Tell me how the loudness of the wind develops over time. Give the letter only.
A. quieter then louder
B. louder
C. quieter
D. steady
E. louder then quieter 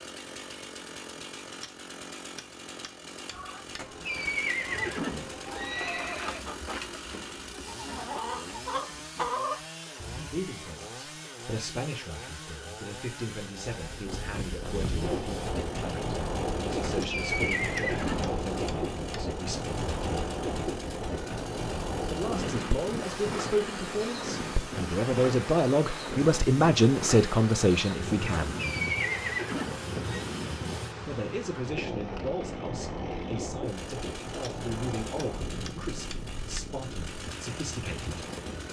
C.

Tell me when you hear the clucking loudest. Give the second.
9 s.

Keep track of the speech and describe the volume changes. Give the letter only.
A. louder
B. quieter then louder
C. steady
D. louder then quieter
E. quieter
D.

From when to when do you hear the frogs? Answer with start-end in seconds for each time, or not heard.
not heard.